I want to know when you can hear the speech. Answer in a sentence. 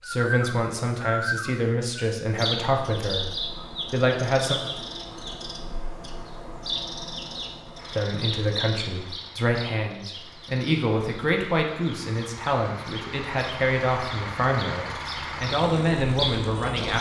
The speech can be heard from 0.1 to 4.5 s and from 8.0 to 16.9 s.